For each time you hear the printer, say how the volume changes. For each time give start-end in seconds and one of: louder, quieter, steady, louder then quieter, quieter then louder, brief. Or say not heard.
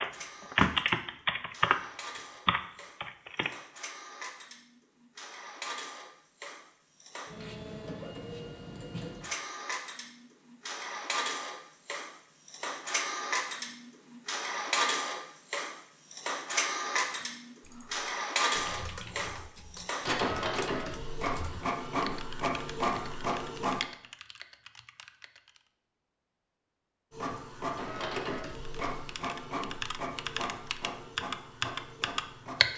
0.0-23.8 louder
27.1-32.7 quieter.